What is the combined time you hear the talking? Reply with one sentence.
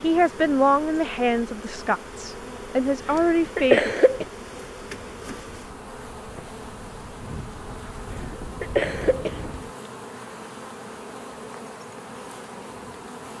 You can hear the talking for 4 seconds altogether.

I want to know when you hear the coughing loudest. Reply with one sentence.
The volume of the coughing peaks at 4 seconds.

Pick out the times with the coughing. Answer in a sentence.
You can hear the coughing from 3.1 to 4.2 s and from 8.2 to 9.4 s.